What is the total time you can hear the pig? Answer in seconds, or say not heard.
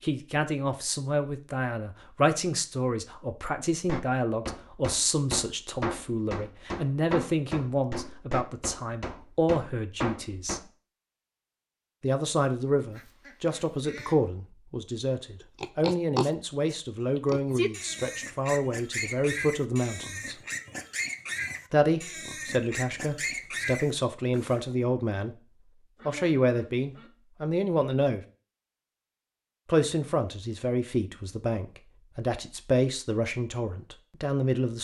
9 s.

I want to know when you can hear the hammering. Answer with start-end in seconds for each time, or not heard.
3.7-10.6.